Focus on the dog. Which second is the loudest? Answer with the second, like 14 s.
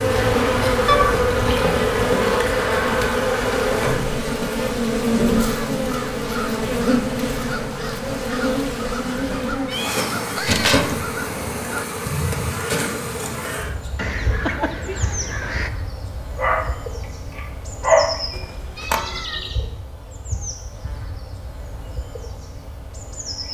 18 s.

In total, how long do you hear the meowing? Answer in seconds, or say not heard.
3 s.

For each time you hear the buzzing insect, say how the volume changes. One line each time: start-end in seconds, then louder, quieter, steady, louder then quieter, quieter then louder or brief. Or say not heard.
0.0-23.4 quieter.